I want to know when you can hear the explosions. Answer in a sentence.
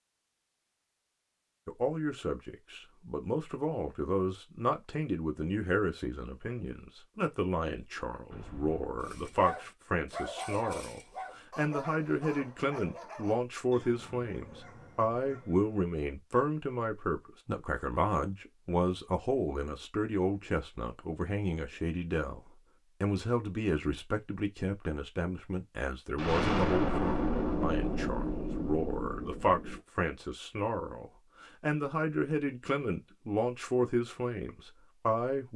The explosions can be heard from 8.3 to 9.6 s and from 26.1 to 29.8 s.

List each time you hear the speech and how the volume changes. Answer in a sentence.
You can hear the speech from 1.6 to 35.5 s, at a steady volume.